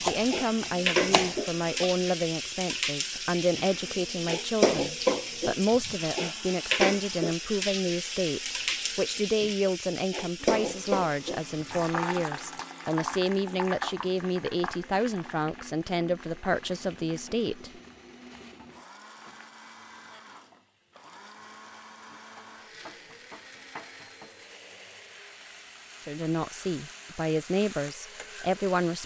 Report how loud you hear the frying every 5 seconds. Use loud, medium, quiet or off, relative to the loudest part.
loud, loud, loud, quiet, quiet, quiet.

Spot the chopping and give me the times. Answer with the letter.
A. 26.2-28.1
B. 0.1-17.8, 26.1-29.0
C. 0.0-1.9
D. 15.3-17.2
C.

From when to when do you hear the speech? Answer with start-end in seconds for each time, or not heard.
0.1-17.8, 26.1-29.0.